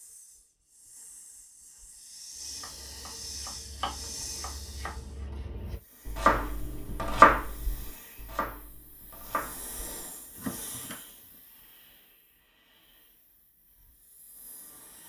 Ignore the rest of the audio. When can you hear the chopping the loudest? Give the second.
7 s.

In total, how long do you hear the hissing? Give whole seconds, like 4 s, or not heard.
15 s.